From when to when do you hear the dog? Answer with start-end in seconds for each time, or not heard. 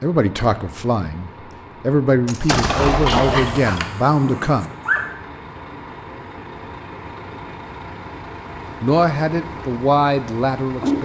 3.2-5.0.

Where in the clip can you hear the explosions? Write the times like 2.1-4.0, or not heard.
2.2-3.8.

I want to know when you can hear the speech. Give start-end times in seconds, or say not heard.
0.0-4.7, 8.8-11.0.